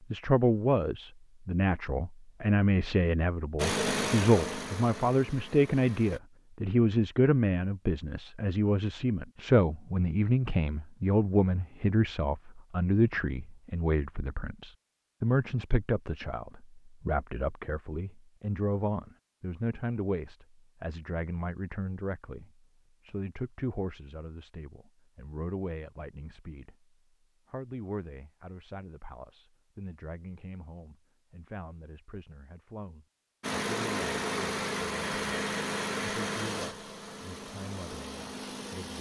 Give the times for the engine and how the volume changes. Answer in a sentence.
You can hear the engine briefly from 3.5 to 6.2 s; and from 33.4 to 38.9 s, getting quieter.